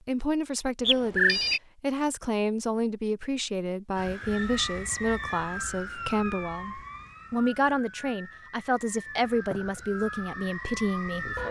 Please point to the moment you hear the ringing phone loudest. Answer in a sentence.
The loudest moment of the ringing phone is at 1 second.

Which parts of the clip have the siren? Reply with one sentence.
You can hear the siren from 4.0 to 11.4 s.